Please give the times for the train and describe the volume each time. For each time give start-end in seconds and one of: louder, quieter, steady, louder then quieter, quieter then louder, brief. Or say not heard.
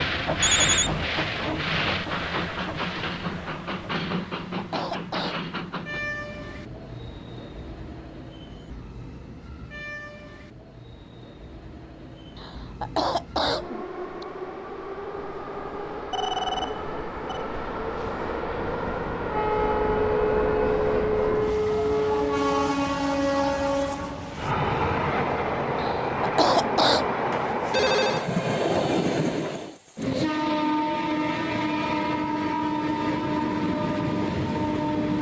0.0-35.1 quieter then louder.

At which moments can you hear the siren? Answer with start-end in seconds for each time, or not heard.
19.3-22.8.